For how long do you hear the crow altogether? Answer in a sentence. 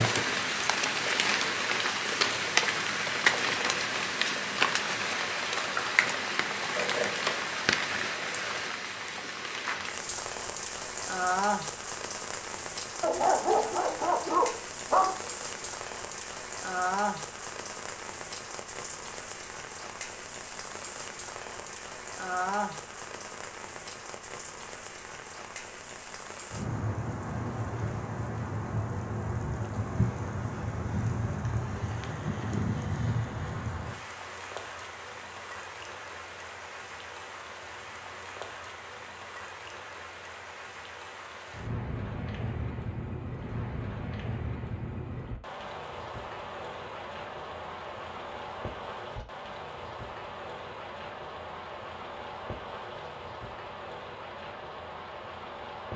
The crow can't be heard in this clip.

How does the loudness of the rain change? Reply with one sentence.
The volume of the rain goes down.